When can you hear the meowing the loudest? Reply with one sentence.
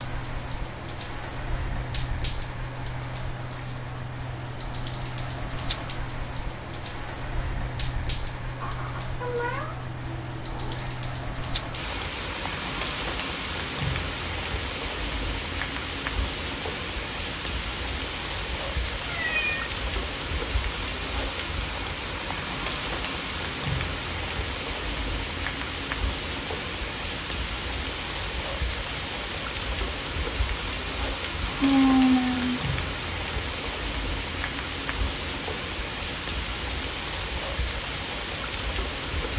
The volume of the meowing peaks at 32 seconds.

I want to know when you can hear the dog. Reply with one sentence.
You can't hear the dog here.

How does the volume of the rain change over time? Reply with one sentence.
The volume of the rain stays about the same.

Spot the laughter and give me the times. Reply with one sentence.
You can't hear the laughter here.